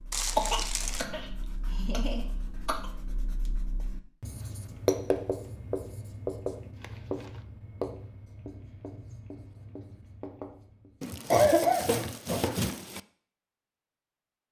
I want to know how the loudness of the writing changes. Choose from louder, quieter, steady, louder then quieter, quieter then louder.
louder then quieter.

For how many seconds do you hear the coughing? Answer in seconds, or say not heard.
3 s.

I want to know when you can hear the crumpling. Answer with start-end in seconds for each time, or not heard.
0.1-1.1, 6.8-7.5, 11.0-13.0.